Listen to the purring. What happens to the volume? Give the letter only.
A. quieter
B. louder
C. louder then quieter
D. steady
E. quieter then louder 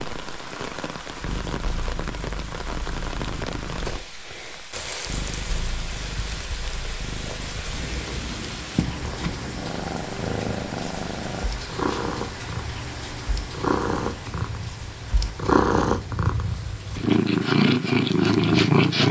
B.